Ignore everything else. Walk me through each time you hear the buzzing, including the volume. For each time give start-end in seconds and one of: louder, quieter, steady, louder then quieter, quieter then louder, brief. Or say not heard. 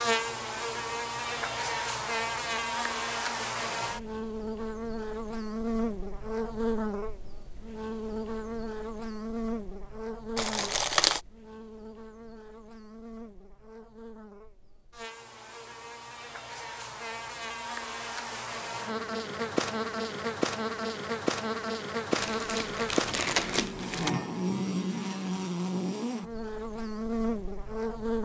0.0-28.2 quieter then louder.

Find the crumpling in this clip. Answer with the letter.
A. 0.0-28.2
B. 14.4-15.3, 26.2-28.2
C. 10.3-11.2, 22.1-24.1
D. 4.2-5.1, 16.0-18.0
C.